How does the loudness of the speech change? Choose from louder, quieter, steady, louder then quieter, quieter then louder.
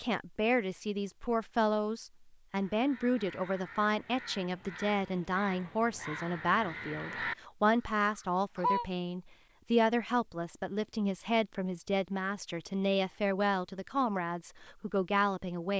steady.